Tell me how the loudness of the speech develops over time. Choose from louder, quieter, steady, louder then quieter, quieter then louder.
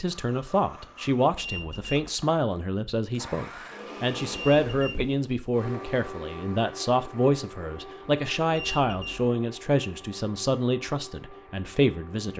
steady.